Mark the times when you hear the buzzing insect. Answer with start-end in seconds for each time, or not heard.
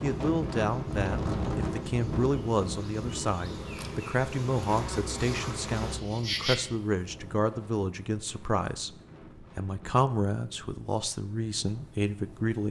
0.0-6.5.